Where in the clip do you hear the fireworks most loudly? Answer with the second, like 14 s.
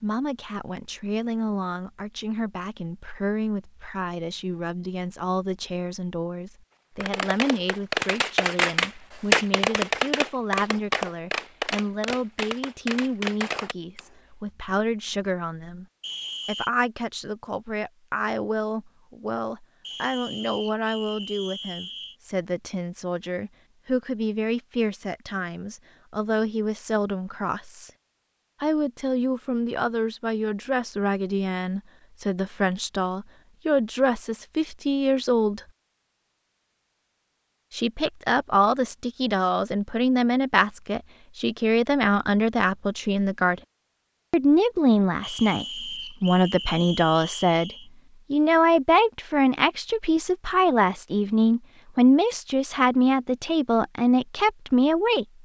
9 s.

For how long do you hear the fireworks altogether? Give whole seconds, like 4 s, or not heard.
7 s.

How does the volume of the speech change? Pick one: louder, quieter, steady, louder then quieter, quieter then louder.
louder.